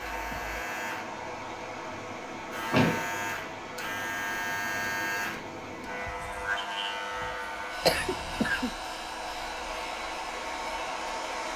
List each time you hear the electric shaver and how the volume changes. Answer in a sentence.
The electric shaver can be heard from 0.0 to 11.5 s, getting louder then quieter.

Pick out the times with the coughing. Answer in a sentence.
The coughing can be heard from 7.8 to 8.7 s.